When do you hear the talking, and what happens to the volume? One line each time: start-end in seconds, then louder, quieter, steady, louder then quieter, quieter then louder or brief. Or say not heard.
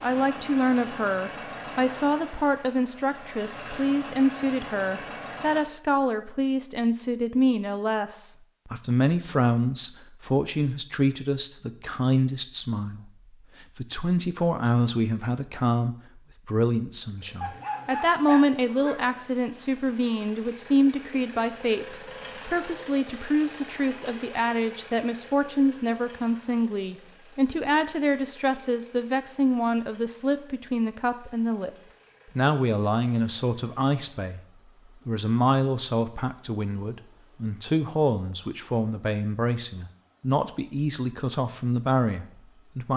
0.0-31.7 steady
32.4-34.4 brief
35.0-42.9 steady.